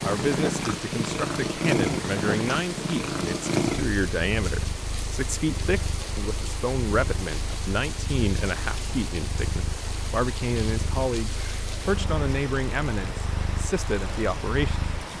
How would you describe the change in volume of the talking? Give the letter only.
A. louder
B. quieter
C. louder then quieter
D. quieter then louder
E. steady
E.